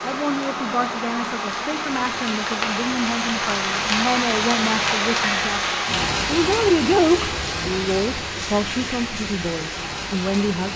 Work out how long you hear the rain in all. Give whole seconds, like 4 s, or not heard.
11 s.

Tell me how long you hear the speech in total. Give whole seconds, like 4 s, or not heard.
11 s.